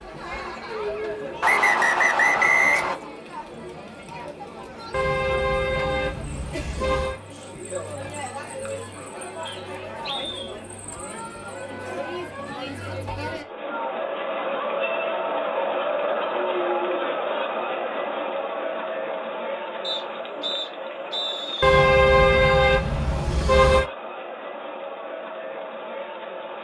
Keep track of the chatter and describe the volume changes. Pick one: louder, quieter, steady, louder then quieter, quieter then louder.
louder then quieter.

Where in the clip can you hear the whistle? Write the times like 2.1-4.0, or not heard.
1.4-3.0, 9.4-10.6, 19.8-21.8.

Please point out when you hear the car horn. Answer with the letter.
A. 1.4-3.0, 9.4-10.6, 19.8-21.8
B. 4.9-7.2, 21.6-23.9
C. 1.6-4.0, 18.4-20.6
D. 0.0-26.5
B.